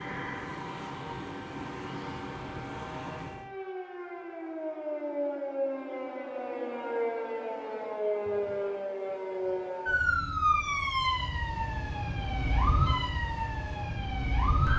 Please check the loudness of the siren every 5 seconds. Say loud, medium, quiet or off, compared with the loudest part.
medium, loud, loud.